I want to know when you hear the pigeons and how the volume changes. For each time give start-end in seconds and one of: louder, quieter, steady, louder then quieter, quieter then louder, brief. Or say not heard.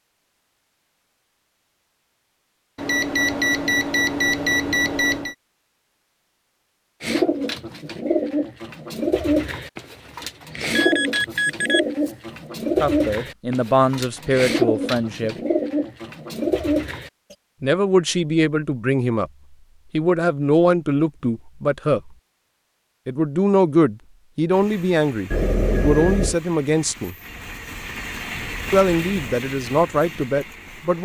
7.0-17.4 steady.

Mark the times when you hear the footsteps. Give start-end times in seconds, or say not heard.
not heard.